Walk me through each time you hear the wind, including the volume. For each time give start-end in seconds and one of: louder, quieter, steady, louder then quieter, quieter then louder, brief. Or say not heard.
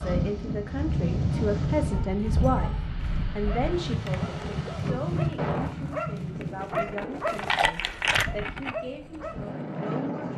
0.0-10.3 quieter.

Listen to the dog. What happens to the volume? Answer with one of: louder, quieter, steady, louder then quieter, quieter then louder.
louder.